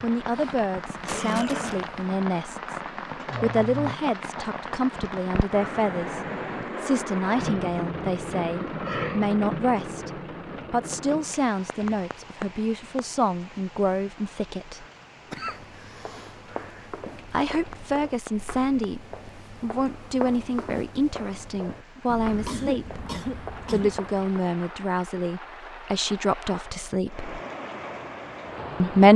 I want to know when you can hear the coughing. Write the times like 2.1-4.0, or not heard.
0.3-2.0, 15.3-16.4, 22.1-24.0.